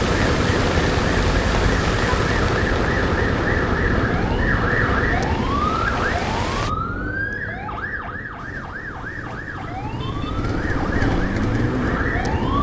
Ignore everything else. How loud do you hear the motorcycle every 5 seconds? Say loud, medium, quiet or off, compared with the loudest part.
off, medium, loud.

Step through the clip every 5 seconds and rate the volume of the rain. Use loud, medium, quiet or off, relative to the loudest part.
loud, loud, off.